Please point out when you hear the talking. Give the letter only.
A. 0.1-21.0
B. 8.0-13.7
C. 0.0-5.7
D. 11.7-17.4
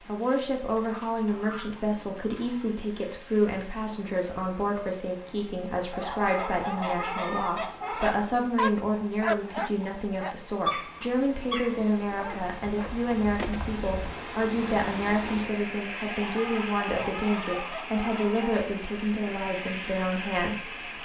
A.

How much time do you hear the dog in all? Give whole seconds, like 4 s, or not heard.
6 s.